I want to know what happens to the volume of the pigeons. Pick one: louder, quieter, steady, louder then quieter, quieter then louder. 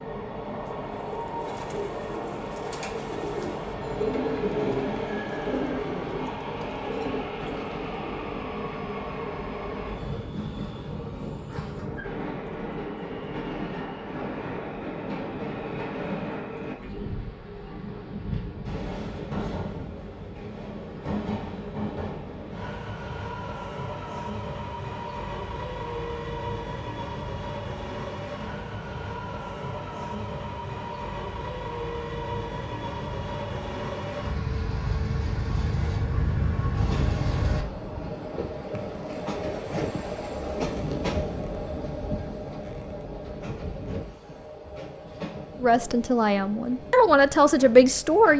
louder then quieter.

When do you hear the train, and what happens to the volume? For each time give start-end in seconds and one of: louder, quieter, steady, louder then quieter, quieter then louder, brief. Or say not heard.
0.0-48.3 steady.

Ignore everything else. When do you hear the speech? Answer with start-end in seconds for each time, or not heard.
45.6-48.3.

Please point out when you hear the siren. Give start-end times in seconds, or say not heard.
not heard.